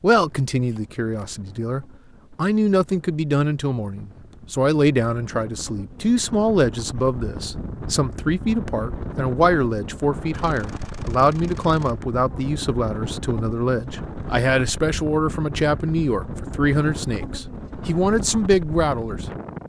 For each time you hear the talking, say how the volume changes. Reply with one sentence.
The talking can be heard from 0.0 to 19.2 s, at a steady volume.